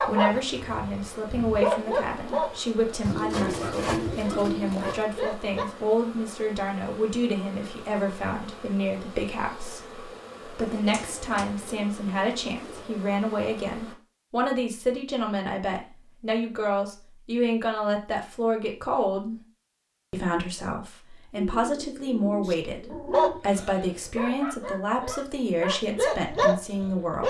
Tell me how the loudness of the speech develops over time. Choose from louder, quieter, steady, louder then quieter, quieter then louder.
steady.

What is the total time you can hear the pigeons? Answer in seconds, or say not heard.
6 s.